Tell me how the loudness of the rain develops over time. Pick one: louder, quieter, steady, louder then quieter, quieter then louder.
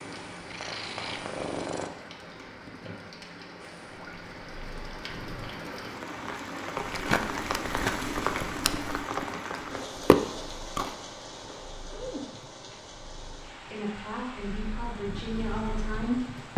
louder then quieter.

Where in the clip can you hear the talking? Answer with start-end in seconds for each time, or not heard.
13.7-16.5.